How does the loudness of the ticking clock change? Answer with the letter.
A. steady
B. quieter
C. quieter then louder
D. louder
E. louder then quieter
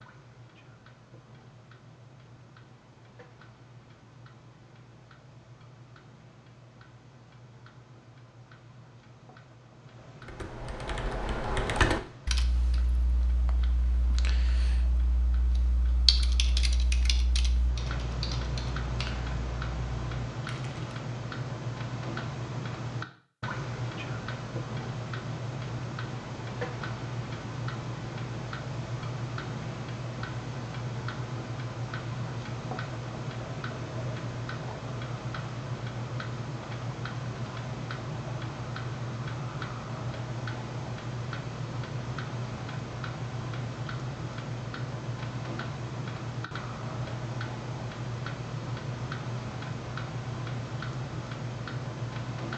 D.